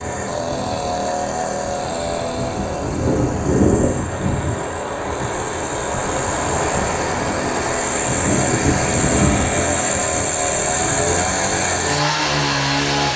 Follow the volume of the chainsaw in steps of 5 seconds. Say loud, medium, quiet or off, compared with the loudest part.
medium, loud, loud.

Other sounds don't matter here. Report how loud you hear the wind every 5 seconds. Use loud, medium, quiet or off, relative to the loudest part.
loud, loud, medium.